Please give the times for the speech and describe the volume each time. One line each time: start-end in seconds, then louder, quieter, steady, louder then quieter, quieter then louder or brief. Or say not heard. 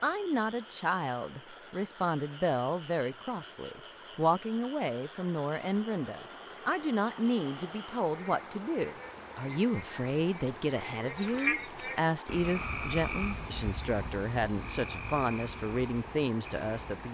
0.0-17.0 steady.